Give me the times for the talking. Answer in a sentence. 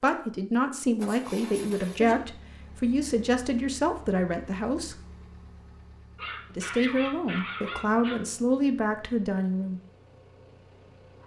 The talking can be heard from 0.0 to 5.0 s and from 6.5 to 9.8 s.